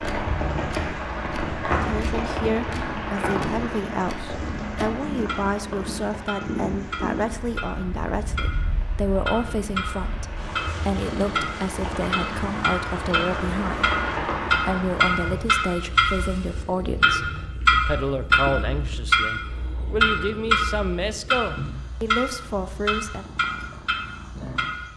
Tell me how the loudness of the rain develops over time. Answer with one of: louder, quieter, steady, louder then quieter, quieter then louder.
quieter then louder.